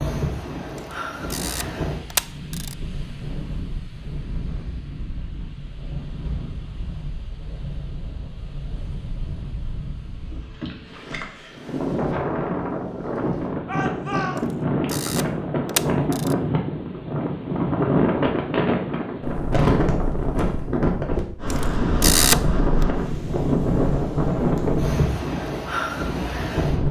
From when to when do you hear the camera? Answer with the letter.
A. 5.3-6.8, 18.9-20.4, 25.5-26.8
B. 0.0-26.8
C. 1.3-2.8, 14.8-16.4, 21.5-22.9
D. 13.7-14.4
C.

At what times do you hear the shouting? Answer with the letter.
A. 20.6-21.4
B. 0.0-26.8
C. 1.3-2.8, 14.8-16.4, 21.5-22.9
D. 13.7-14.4
D.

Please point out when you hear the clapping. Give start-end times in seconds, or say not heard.
not heard.